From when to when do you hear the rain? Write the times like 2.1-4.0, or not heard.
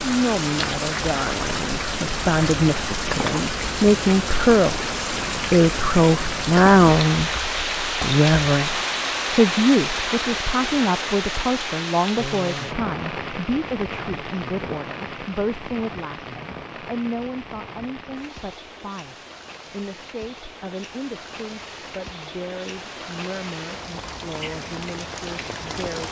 0.0-26.0.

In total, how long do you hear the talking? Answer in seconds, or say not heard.
26 s.